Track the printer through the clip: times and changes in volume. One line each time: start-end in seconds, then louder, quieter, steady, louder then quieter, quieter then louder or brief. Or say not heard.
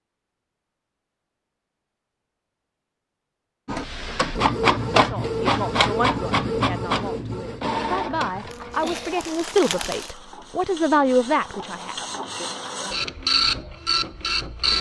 3.6-14.7 quieter then louder.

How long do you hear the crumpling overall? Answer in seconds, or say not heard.
2 s.